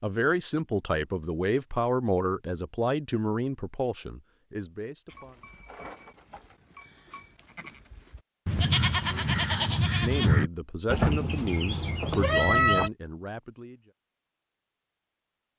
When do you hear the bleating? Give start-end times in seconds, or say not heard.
5.2-12.9.